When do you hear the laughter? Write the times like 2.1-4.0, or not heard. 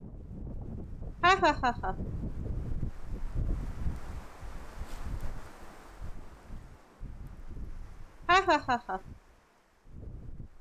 1.2-1.9, 8.2-9.0.